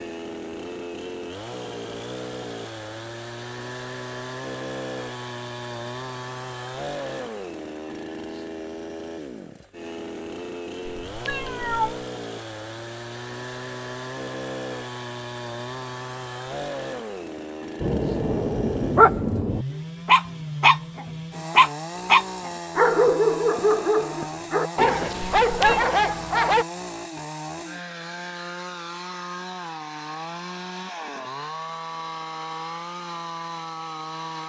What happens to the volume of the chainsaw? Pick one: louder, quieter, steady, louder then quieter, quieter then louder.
steady.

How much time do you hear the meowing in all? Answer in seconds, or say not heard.
2 s.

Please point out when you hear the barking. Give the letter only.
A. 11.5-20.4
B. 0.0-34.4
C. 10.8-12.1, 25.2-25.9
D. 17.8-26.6
D.